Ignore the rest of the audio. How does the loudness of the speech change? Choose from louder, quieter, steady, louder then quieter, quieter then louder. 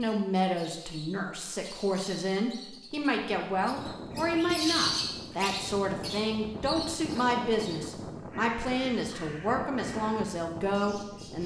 steady.